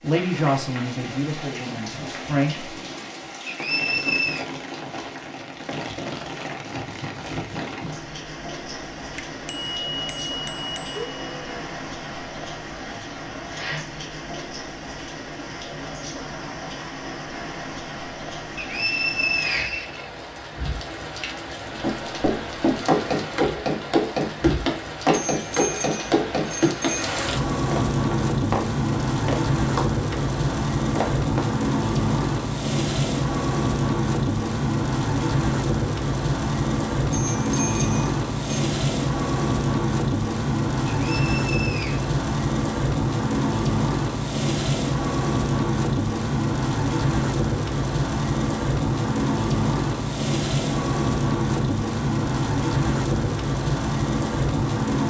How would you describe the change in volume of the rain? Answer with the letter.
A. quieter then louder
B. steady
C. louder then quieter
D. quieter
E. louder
E.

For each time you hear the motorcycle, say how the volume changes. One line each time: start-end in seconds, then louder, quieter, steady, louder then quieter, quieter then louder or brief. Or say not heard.
not heard.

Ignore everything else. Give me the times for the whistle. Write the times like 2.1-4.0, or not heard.
3.5-4.5, 18.6-20.1, 41.0-42.1.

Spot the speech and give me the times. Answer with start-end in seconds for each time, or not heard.
0.0-2.8.